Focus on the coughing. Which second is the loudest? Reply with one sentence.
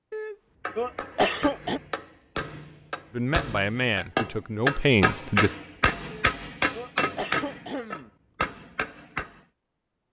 The volume of the coughing peaks at 1 second.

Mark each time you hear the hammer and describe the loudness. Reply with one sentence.
You can hear the hammer from 0.6 to 9.4 s, getting louder then quieter.